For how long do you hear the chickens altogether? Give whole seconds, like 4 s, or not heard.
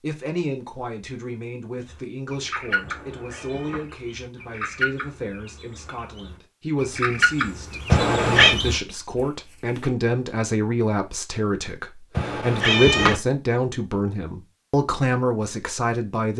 8 s.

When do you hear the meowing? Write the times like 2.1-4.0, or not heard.
2.8-3.9, 7.8-8.6, 12.2-13.2.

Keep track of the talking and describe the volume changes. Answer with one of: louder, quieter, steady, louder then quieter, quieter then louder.
louder.